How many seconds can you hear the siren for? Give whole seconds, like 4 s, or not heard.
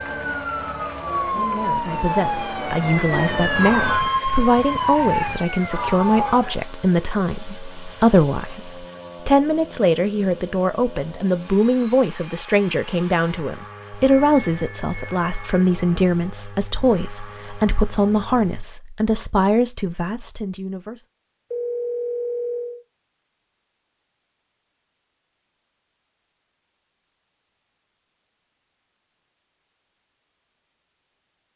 7 s.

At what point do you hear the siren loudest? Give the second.
4 s.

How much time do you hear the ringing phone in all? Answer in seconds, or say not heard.
4 s.